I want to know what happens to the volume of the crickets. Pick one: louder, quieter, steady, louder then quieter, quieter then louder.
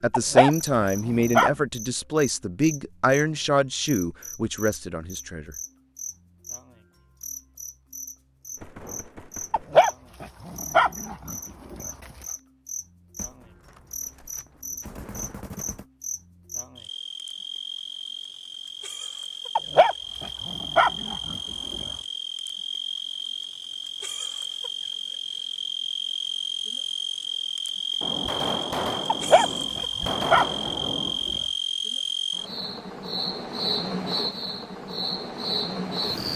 louder.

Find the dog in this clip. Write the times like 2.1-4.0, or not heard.
0.1-1.5, 9.5-11.9, 19.6-21.9, 29.1-31.4.